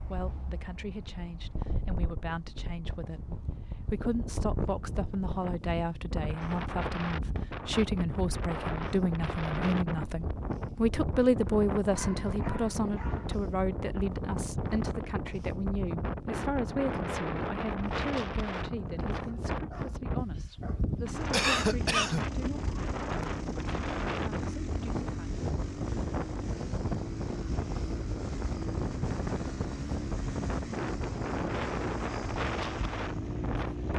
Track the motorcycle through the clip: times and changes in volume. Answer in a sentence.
You can hear the motorcycle from 21.0 to 33.9 s, at a steady volume.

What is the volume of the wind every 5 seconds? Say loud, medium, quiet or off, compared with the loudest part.
medium, loud, loud, loud, loud, loud, loud.